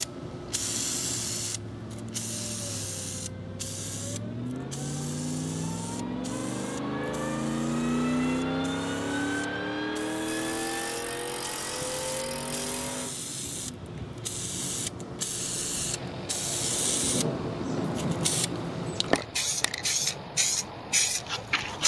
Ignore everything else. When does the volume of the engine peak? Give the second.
8 s.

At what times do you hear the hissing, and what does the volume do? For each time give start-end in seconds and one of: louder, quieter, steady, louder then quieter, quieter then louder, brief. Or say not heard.
0.0-21.8 quieter then louder.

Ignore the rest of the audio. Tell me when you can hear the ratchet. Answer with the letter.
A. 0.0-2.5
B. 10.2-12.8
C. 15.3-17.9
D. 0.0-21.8
B.